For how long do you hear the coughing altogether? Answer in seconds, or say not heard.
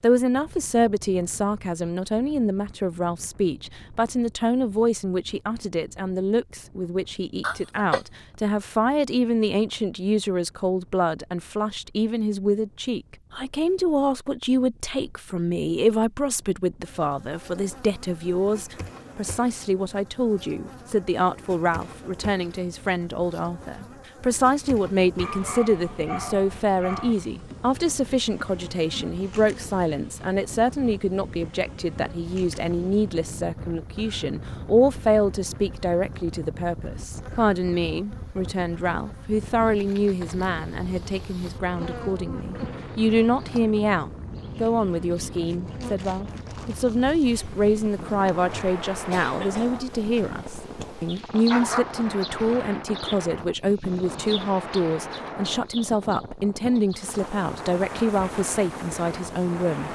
2 s.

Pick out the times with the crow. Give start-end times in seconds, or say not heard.
not heard.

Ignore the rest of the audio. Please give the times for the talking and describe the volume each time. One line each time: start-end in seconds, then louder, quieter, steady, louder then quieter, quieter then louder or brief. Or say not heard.
0.0-59.8 steady.